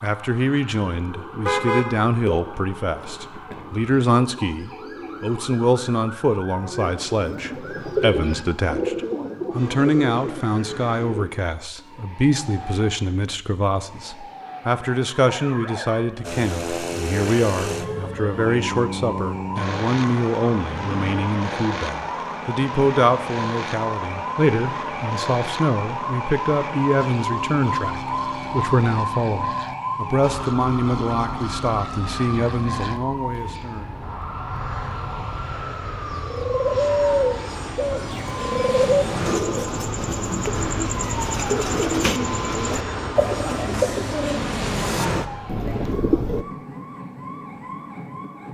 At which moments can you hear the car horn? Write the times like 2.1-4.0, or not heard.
1.4-2.4.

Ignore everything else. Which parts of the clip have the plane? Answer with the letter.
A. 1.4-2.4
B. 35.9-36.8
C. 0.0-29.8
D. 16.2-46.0
D.